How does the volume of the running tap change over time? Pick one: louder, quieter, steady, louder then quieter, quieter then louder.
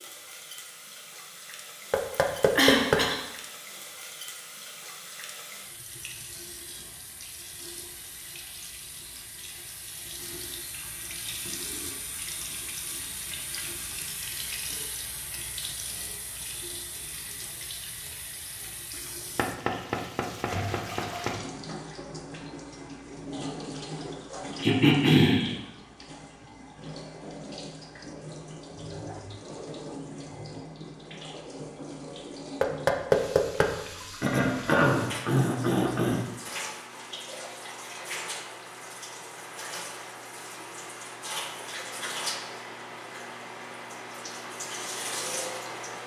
louder.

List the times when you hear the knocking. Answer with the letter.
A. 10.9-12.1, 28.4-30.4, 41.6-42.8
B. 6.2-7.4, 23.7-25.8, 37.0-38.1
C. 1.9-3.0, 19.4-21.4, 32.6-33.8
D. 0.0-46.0
C.